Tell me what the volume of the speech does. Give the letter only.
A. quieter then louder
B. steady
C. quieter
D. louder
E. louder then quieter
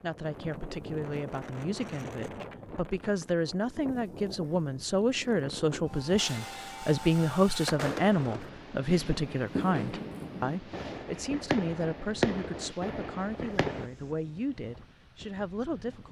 E.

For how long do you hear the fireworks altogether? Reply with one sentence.
The fireworks can be heard for 8 seconds in total.